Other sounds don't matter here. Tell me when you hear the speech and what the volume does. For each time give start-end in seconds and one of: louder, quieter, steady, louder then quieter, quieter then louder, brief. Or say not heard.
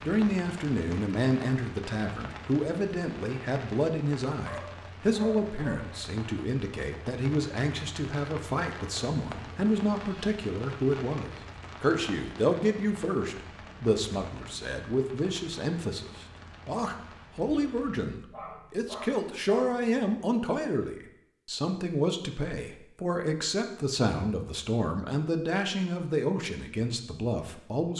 0.0-27.9 steady.